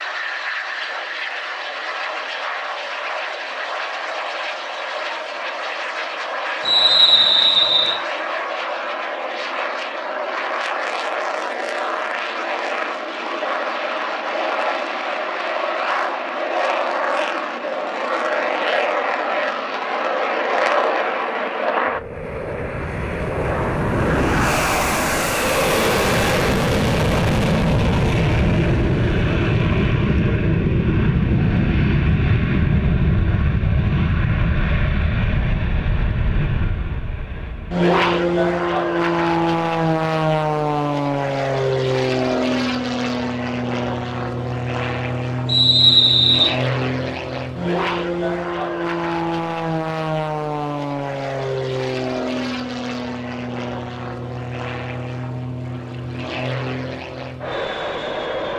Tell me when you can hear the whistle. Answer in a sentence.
The whistle can be heard from 6.7 to 8.0 s and from 45.5 to 46.5 s.